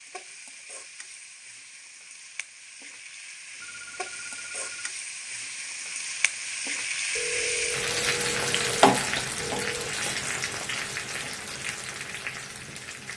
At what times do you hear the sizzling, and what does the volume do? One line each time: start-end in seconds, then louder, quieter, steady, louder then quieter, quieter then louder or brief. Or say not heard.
0.0-13.1 louder then quieter.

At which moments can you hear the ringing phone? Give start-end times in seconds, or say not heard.
3.6-4.9, 7.2-9.9.